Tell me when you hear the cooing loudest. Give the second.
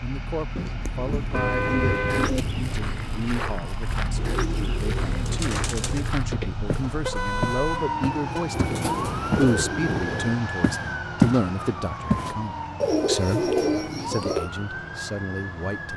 14 s.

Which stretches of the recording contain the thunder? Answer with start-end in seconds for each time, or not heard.
not heard.